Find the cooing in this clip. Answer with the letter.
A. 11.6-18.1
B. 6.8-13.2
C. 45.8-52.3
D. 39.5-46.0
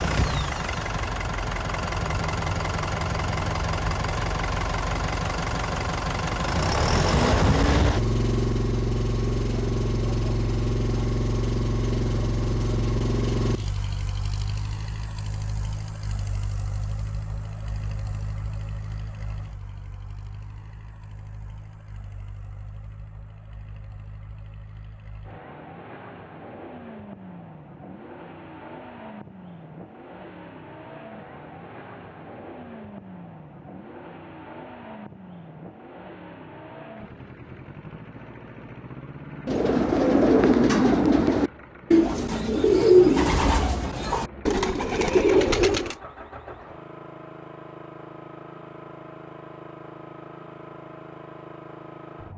D.